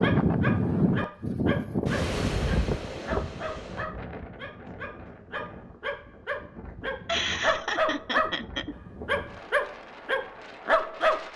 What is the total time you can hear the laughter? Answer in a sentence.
The laughter can be heard for 2 seconds in total.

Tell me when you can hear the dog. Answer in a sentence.
The dog can be heard from 0.0 to 8.3 s and from 9.1 to 11.3 s.